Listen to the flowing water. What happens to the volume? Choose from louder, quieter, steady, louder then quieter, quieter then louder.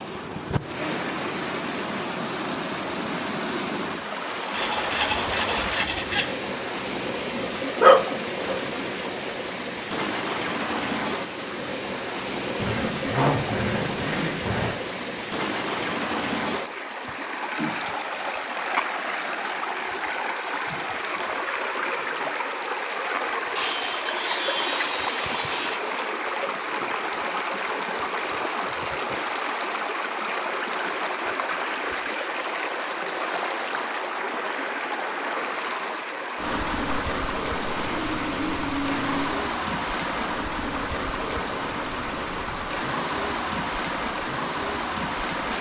steady.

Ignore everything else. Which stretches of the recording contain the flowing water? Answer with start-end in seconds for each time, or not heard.
0.0-45.5.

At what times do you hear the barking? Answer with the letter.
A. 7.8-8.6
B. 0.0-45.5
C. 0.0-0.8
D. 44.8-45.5
A.